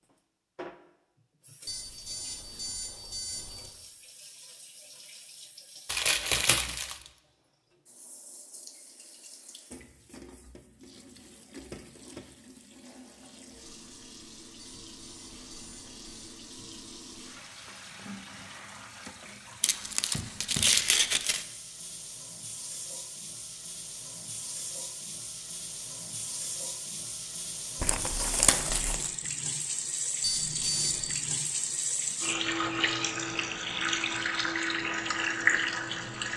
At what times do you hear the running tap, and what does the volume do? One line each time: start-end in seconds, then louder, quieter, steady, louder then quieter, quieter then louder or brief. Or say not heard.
0.0-36.3 louder.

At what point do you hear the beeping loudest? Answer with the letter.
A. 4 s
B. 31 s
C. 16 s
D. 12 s
B.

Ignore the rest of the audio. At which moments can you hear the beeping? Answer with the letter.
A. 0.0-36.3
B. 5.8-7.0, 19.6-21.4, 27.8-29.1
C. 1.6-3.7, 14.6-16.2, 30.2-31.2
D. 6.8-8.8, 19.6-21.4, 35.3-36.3
C.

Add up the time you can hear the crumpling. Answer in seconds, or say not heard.
4 s.